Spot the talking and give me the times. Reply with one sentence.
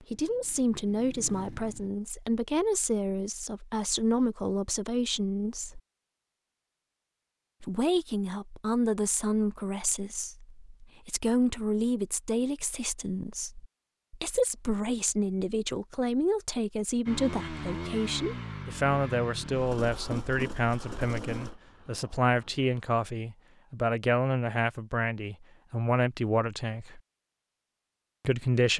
You can hear the talking from 0.1 to 5.8 s, from 7.6 to 27.0 s and from 28.2 to 28.7 s.